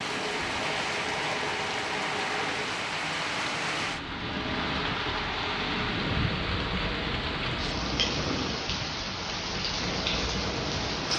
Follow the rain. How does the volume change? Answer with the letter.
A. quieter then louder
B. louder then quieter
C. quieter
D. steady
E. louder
D.